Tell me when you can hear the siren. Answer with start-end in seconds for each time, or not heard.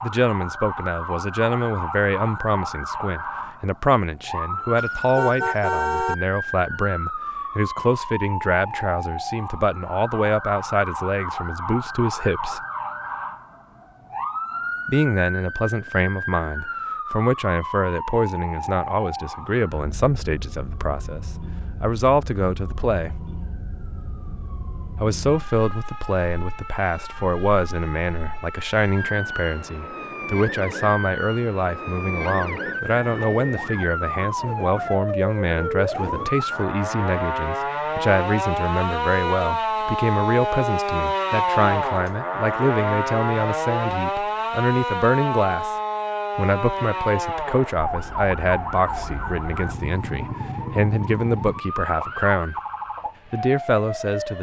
0.0-54.3.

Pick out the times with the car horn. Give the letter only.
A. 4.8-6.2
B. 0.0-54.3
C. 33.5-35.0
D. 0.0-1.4
A.